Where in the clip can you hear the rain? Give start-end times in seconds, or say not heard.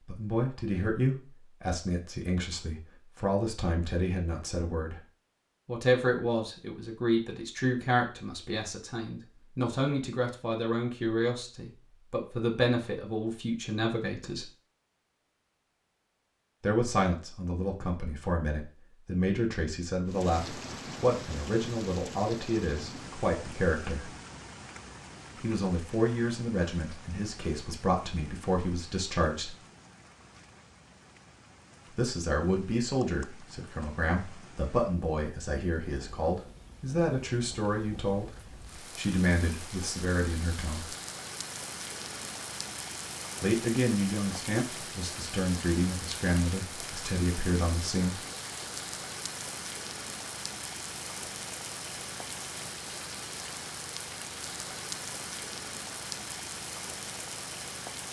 20.1-58.0.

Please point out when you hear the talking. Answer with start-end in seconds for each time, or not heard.
0.1-5.0, 5.7-14.5, 16.6-24.1, 25.4-29.6, 31.9-40.9, 43.4-48.2.